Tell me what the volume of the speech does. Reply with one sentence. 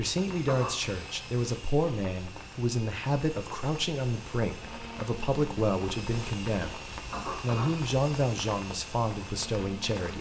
The loudness of the speech stays about the same.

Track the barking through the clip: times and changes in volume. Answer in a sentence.
The barking can't be heard in this clip.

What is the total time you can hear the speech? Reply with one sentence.
You can hear the speech for 10 seconds altogether.